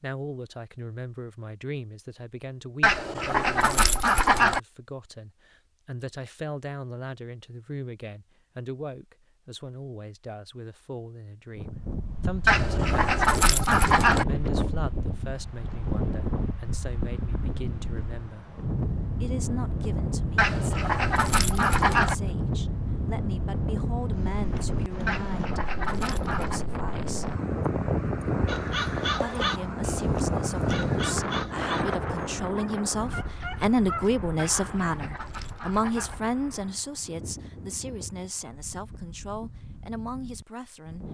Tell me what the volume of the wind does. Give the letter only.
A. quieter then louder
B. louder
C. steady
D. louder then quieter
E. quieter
E.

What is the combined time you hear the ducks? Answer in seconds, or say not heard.
9 s.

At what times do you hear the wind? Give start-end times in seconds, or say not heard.
11.6-41.0.